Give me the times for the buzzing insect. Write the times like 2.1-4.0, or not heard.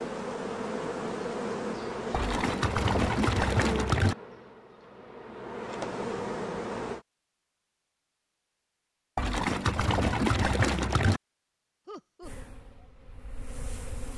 0.0-7.0, 12.2-14.1.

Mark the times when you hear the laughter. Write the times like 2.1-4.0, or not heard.
11.8-12.5.